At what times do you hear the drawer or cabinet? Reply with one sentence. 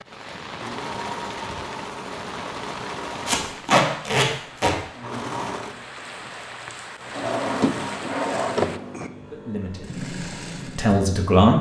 You can hear the drawer or cabinet from 7.1 to 9.1 s.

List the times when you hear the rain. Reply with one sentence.
The rain can be heard from 0.0 to 8.8 s.